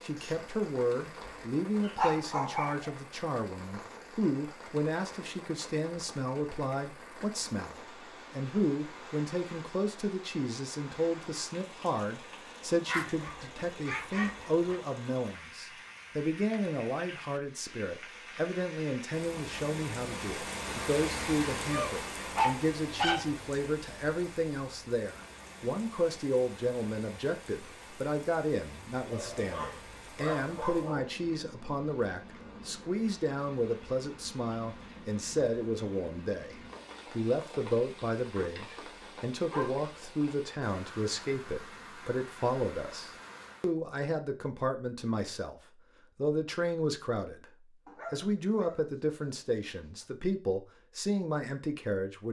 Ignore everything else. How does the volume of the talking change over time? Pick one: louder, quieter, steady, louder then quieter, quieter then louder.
steady.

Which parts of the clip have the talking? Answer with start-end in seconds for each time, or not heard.
0.0-52.2.